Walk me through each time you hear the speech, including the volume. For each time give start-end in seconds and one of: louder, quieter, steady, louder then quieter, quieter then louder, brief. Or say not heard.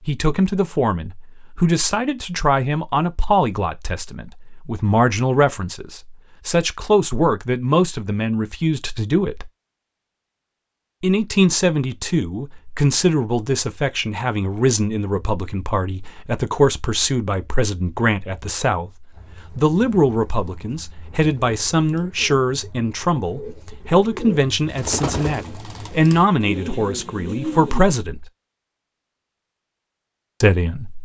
0.1-9.5 steady
11.0-28.2 steady
30.4-31.0 brief.